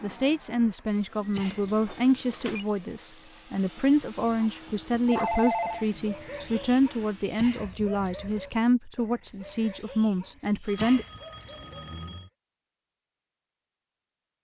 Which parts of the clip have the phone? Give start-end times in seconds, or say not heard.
1.4-2.6, 5.0-5.8, 10.7-12.3.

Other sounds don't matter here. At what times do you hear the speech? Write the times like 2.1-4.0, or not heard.
0.0-11.1.